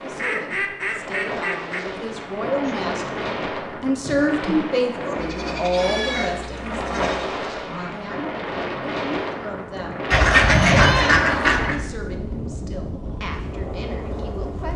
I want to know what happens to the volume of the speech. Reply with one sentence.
The loudness of the speech goes up, then down.